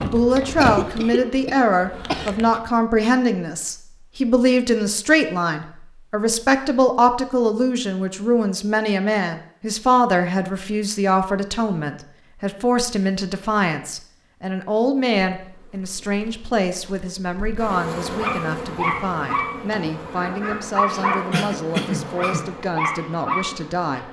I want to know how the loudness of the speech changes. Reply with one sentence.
The volume of the speech goes down.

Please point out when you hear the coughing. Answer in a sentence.
The coughing can be heard from 0.6 to 2.5 s and from 21.3 to 22.5 s.